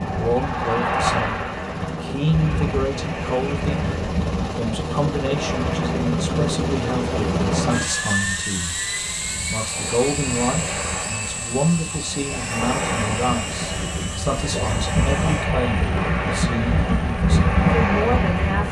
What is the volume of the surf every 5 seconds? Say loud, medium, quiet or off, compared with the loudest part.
medium, quiet, medium, loud.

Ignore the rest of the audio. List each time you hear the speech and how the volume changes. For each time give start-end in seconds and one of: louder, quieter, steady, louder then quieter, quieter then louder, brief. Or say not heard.
0.1-18.6 steady.